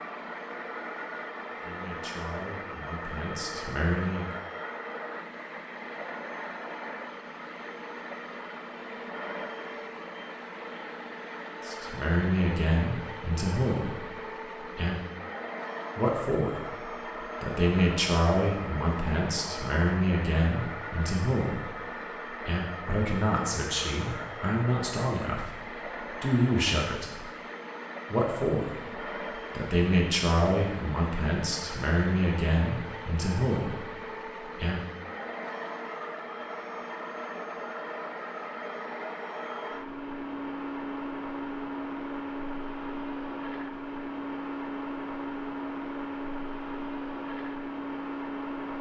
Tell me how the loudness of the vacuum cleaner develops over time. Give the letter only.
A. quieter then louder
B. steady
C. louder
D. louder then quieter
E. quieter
B.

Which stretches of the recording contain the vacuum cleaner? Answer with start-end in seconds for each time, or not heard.
0.0-48.7.